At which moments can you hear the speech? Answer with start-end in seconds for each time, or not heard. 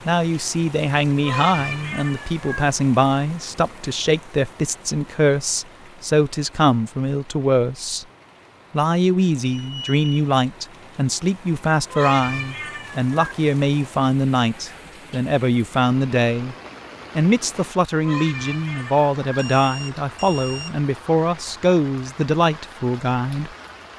0.1-8.1, 8.7-16.6, 17.1-23.5.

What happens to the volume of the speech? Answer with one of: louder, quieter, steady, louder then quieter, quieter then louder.
steady.